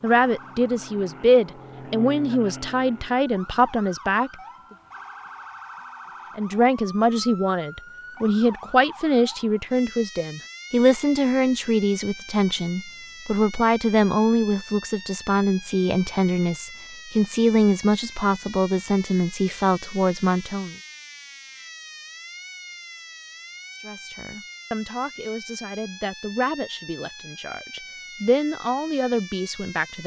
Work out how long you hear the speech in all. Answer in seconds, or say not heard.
25 s.